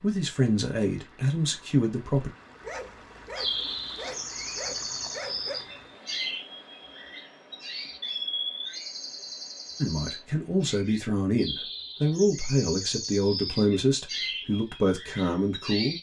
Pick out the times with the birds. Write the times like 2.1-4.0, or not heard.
3.4-15.9.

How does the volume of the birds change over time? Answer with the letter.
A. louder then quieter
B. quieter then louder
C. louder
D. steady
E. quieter
D.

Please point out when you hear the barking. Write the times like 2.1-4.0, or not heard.
2.6-5.6.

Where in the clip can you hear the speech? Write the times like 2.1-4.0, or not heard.
0.0-2.3, 9.8-15.9.